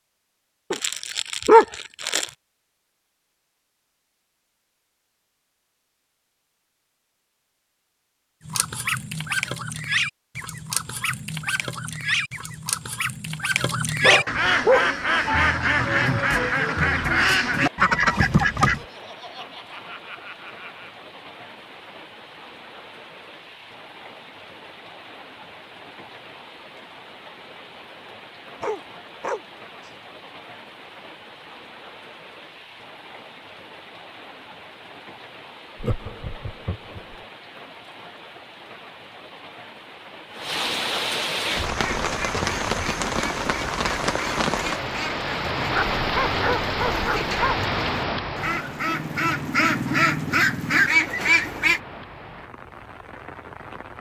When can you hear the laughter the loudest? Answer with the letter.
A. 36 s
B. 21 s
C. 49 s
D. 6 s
A.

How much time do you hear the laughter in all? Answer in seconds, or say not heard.
4 s.